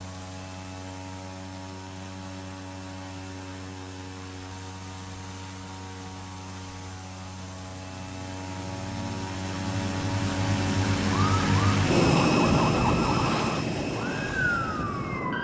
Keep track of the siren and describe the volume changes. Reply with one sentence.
The loudness of the siren goes down, then up.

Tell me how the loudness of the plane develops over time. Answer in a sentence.
The volume of the plane goes up.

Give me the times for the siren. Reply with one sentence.
The siren can be heard from 11.1 to 15.3 s.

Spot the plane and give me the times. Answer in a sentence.
You can hear the plane from 0.0 to 15.3 s.